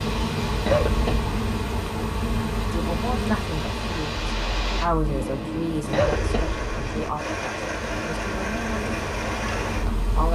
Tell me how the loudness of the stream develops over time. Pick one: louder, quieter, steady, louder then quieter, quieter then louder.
louder.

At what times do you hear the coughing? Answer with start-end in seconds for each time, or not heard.
0.7-1.3, 5.9-7.2.